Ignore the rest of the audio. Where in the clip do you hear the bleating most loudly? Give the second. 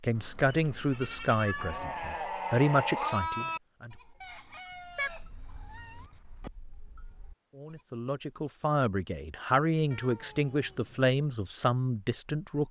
3 s.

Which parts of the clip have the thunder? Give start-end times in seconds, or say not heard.
not heard.